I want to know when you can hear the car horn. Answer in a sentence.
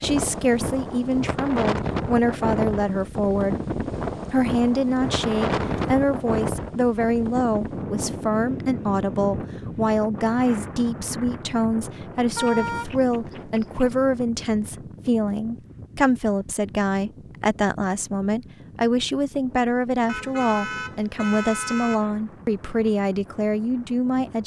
The car horn can be heard from 5.0 to 6.0 s, from 12.3 to 13.9 s and from 20.1 to 22.1 s.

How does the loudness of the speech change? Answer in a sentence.
The volume of the speech stays about the same.